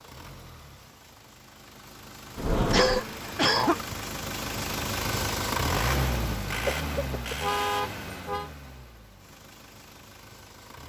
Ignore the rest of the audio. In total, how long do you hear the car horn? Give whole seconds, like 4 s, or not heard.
2 s.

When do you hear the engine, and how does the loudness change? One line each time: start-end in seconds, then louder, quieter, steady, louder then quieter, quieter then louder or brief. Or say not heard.
0.0-10.8 louder then quieter.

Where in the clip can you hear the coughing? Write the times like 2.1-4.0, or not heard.
2.7-3.9, 6.7-7.3.